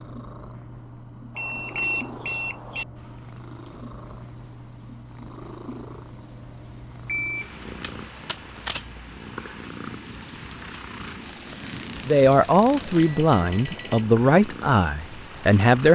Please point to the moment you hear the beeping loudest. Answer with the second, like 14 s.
2 s.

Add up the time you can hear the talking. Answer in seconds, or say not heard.
4 s.